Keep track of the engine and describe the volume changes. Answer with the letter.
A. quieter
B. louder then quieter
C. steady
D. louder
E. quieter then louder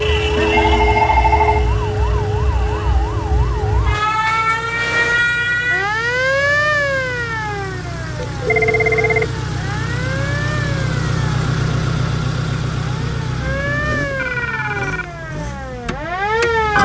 B.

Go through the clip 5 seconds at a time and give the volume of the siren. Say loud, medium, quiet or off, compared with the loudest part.
loud, loud, medium, loud.